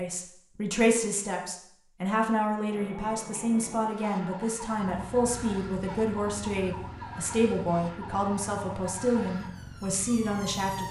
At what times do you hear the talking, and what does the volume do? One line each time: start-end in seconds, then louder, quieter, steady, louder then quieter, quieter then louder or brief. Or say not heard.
0.0-10.8 steady.